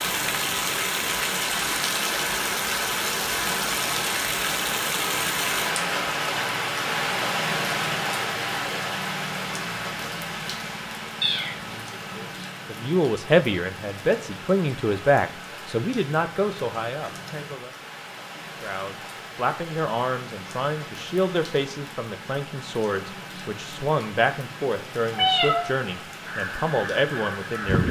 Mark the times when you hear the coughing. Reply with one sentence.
The coughing can't be heard in this clip.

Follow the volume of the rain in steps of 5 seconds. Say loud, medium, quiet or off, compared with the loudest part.
loud, loud, medium, quiet, quiet, quiet.